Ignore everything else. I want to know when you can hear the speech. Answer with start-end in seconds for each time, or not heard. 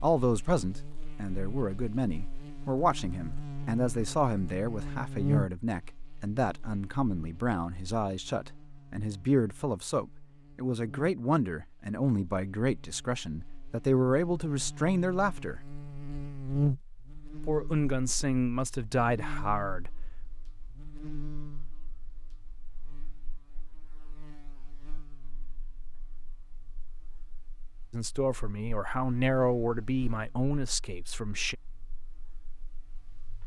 0.0-15.6, 17.4-20.3, 27.9-31.6.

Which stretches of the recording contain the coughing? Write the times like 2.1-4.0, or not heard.
not heard.